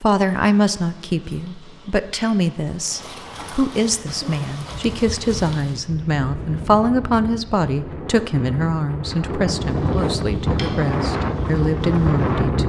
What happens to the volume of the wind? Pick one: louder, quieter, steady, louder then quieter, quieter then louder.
louder.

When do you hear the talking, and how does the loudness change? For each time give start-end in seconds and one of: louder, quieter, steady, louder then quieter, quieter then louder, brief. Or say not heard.
0.0-12.6 steady.